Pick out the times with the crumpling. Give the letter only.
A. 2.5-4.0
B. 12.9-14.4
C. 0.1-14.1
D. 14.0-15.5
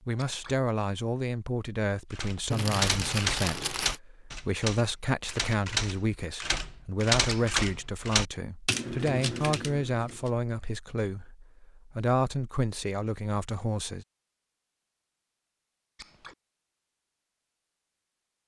A.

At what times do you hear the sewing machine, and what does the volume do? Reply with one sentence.
You can't hear the sewing machine here.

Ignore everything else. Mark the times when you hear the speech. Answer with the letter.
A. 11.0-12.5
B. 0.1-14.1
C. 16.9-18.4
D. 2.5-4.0
B.